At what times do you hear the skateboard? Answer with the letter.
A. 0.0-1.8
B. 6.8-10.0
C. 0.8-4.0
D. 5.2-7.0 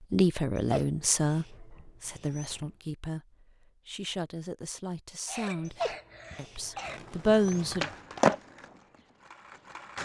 B.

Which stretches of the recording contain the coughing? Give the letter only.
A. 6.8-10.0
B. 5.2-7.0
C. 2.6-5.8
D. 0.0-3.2
B.